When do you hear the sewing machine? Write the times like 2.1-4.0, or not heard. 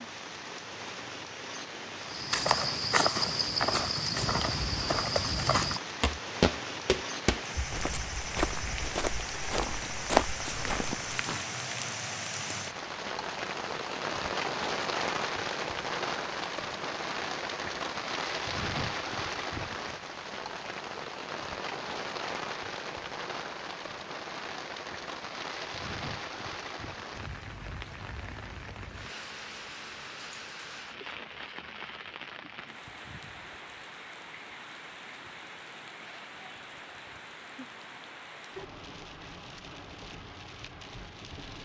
not heard.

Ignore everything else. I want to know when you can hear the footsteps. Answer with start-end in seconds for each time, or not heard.
2.0-11.2.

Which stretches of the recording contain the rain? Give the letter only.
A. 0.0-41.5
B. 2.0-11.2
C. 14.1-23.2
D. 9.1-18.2
A.